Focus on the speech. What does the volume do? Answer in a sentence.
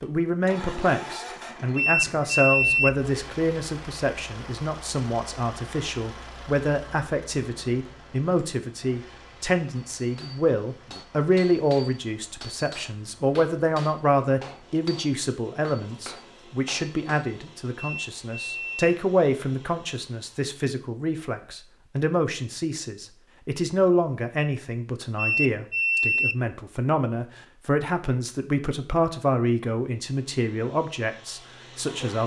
The volume of the speech stays about the same.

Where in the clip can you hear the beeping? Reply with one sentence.
The beeping can be heard from 1.8 to 2.9 s, from 17.8 to 18.8 s and from 25.1 to 26.4 s.